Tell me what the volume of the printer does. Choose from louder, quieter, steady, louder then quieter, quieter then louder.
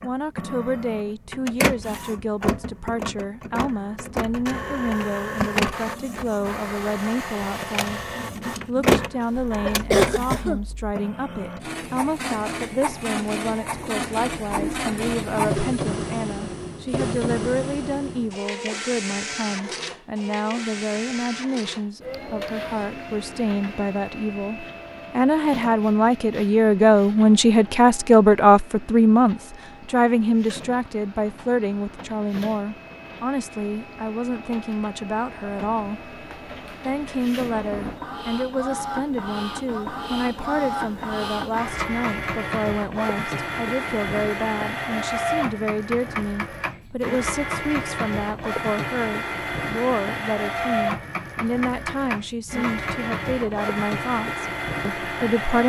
quieter then louder.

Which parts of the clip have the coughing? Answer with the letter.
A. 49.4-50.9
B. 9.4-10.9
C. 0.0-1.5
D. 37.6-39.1
B.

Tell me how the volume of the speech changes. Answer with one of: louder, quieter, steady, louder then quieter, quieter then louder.
louder then quieter.